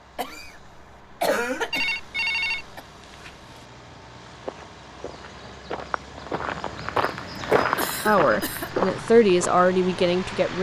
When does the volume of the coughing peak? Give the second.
1 s.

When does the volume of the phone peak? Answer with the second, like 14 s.
2 s.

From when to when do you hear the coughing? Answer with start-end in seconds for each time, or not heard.
0.1-2.8, 7.8-8.7.